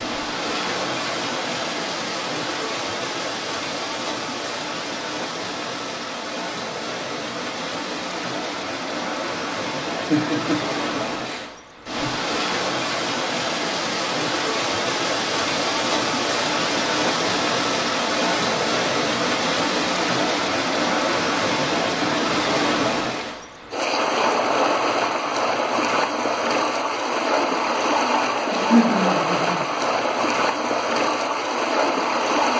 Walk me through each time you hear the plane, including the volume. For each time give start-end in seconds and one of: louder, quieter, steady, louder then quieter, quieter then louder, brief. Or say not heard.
not heard.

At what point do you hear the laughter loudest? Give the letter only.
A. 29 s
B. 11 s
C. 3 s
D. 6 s
A.